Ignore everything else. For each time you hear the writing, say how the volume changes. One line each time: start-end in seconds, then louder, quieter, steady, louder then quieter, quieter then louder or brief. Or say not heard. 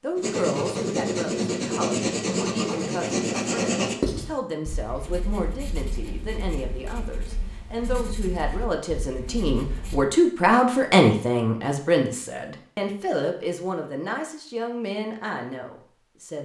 0.1-10.1 quieter.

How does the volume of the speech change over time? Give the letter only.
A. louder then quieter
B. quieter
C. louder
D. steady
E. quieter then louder
A.